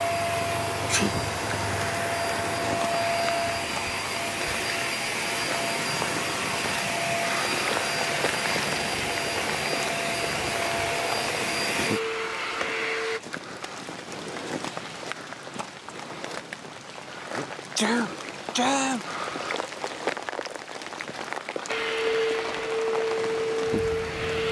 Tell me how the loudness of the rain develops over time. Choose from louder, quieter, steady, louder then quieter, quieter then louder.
steady.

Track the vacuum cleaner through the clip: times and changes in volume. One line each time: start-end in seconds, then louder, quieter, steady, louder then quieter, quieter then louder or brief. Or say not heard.
0.0-13.2 steady
21.6-24.4 brief.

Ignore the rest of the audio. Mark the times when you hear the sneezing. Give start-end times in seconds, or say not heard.
0.8-1.3, 16.9-19.1.